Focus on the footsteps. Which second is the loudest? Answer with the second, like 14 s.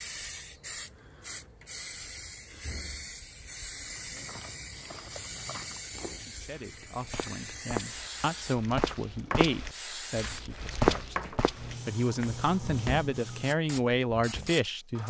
11 s.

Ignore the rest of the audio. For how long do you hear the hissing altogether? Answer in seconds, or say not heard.
15 s.